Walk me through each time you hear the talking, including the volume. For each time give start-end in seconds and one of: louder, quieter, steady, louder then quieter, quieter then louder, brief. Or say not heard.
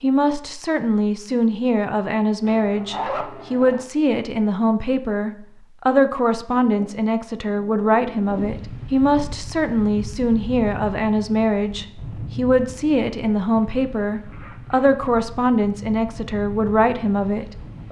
0.0-17.8 steady.